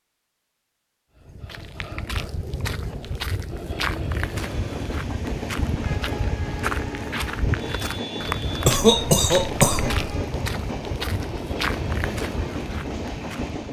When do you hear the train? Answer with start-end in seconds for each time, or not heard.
4.2-13.6.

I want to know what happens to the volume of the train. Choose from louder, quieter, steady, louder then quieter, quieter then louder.
steady.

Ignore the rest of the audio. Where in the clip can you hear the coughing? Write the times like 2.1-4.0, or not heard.
8.7-10.1.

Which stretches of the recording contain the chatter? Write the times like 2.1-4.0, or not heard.
not heard.